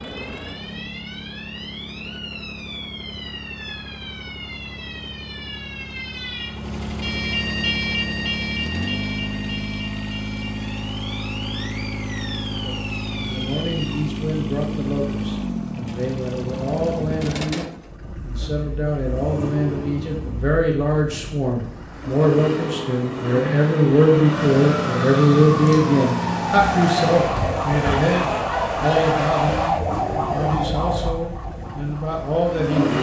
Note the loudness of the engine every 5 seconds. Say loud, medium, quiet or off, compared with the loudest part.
medium, loud, loud, loud, loud, loud, loud.